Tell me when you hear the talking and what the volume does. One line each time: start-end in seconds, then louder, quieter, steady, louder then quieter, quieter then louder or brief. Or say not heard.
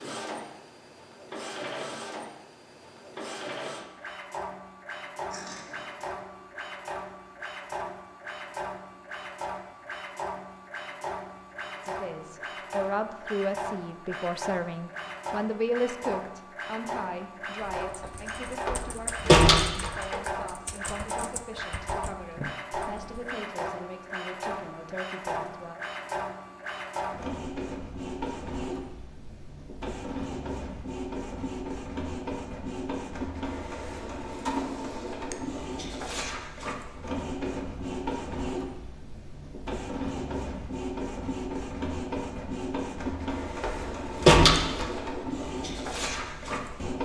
11.8-25.8 quieter.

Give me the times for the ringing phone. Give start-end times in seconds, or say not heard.
not heard.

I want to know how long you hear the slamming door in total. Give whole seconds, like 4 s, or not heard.
3 s.